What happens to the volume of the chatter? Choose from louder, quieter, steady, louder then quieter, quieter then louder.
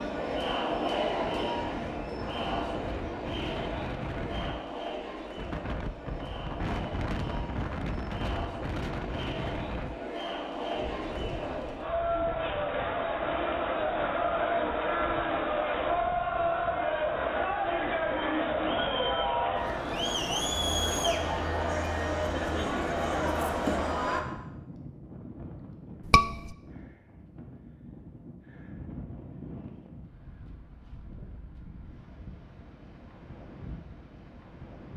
quieter then louder.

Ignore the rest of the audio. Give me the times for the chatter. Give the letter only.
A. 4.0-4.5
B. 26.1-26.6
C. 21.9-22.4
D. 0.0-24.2
D.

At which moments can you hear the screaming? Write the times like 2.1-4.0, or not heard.
26.1-26.6.